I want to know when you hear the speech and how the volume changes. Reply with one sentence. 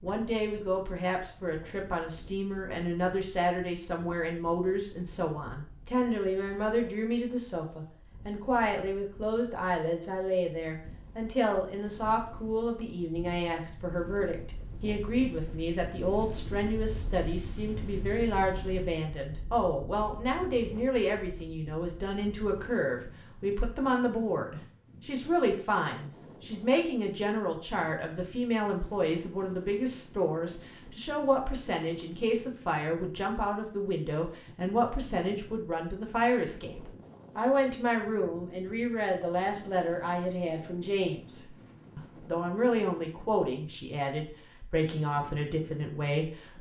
You can hear the speech from 0.0 to 46.5 s, at a steady volume.